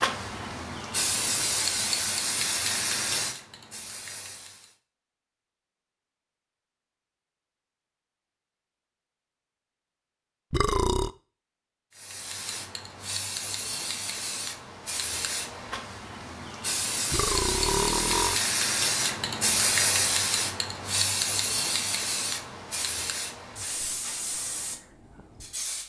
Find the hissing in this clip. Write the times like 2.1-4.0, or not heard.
0.0-4.8, 11.9-25.8.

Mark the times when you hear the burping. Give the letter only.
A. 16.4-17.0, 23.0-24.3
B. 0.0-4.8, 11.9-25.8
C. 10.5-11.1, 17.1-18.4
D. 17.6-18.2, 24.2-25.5
C.